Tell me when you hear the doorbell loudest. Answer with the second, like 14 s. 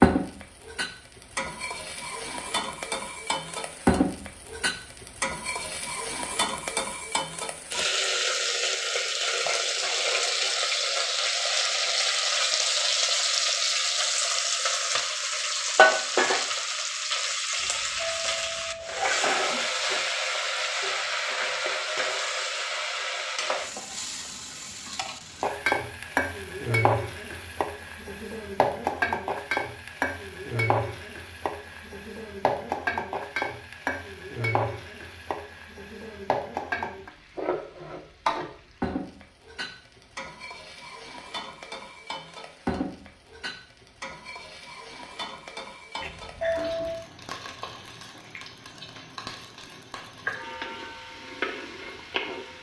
47 s.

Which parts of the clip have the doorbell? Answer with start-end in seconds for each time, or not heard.
17.6-19.2, 46.0-47.1.